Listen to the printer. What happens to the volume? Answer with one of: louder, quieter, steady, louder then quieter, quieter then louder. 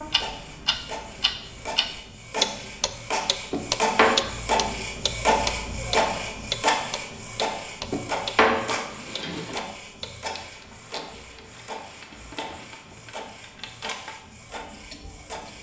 louder then quieter.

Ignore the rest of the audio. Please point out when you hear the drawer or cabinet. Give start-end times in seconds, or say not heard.
3.5-4.2, 7.9-9.6.